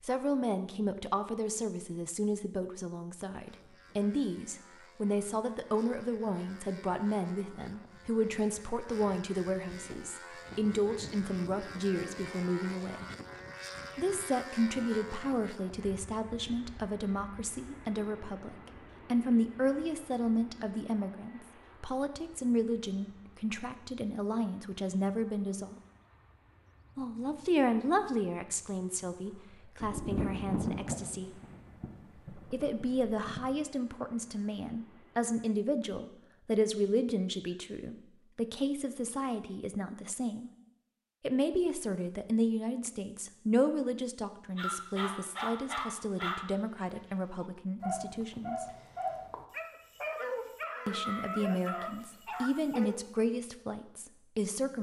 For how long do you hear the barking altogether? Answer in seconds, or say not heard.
9 s.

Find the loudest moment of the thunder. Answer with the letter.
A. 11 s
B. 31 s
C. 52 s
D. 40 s
B.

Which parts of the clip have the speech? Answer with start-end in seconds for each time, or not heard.
0.0-13.1, 13.9-25.8, 26.9-31.4, 32.5-40.5, 41.2-48.6, 50.9-54.7.